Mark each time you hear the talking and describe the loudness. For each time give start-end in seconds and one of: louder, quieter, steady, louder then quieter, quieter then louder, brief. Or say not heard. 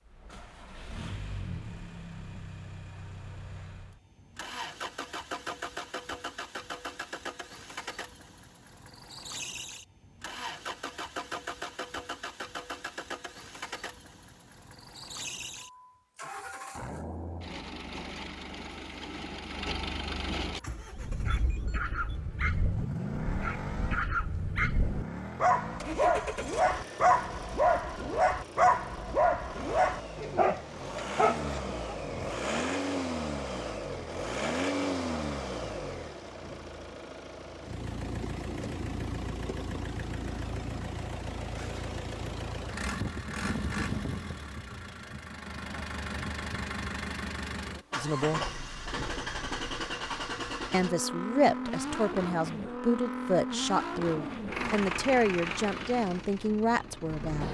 48.0-48.4 brief
50.7-57.4 steady.